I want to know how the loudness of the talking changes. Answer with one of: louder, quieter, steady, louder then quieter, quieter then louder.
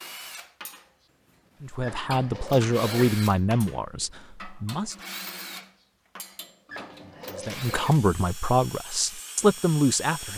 quieter then louder.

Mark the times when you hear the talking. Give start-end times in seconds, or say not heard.
1.6-5.0, 7.3-10.3.